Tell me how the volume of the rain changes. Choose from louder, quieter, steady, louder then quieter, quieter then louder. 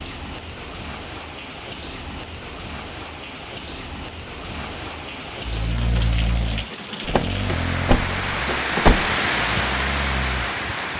louder.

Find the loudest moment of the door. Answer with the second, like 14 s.
9 s.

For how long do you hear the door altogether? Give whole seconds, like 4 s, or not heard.
2 s.